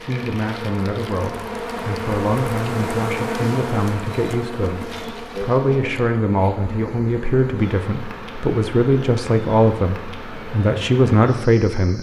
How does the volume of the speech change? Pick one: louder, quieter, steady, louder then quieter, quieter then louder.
louder.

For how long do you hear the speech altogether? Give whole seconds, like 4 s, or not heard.
12 s.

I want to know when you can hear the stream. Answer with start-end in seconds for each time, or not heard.
not heard.